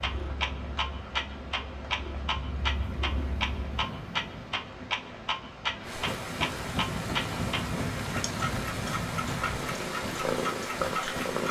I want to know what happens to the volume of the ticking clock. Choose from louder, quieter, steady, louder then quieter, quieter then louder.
steady.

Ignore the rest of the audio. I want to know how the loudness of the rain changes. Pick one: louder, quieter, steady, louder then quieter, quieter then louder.
louder.